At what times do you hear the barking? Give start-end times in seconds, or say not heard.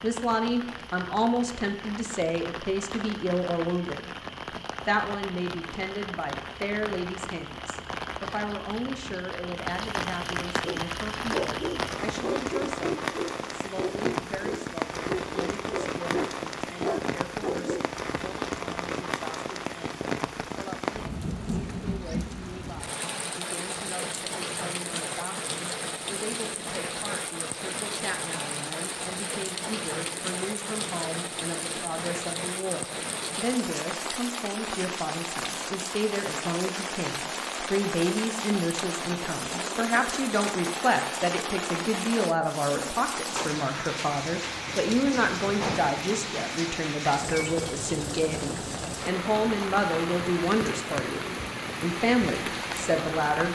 10.7-17.9.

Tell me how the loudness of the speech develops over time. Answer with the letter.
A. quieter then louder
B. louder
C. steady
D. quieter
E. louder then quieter
A.